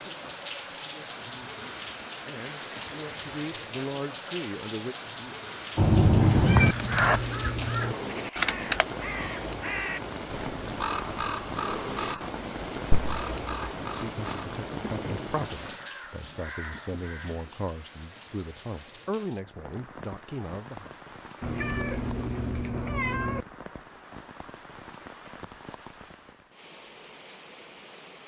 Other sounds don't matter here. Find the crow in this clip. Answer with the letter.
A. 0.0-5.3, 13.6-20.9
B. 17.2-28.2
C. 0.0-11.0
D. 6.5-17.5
D.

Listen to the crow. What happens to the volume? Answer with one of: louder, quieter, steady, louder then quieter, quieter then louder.
quieter.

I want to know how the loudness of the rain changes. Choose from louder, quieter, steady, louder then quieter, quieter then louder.
quieter.